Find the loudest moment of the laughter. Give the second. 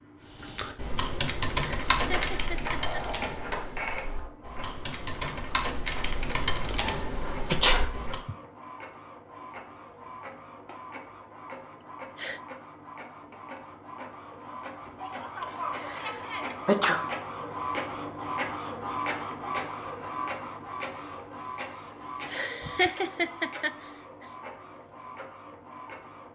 23 s.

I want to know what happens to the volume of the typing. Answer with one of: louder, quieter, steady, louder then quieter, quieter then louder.
quieter then louder.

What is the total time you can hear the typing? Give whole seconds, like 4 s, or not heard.
8 s.